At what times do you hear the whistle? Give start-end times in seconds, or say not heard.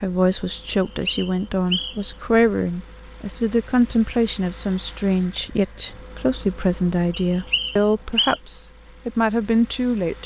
0.8-2.1, 7.1-8.4.